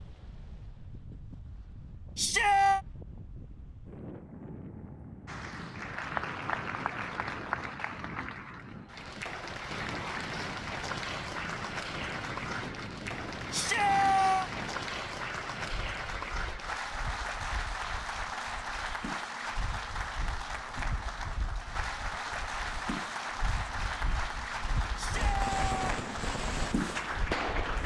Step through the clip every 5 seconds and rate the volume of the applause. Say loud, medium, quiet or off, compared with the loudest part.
off, loud, loud, loud, loud, loud.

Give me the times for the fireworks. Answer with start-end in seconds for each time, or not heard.
25.1-27.8.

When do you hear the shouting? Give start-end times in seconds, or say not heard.
2.1-2.8, 13.5-14.5, 24.9-25.8.